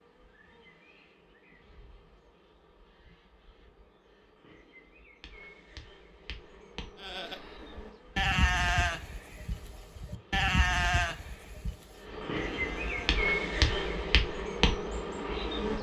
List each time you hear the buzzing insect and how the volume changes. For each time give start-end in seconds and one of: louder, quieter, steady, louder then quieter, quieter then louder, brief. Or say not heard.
0.0-15.7 louder.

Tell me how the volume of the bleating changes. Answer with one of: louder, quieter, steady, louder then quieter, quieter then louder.
quieter.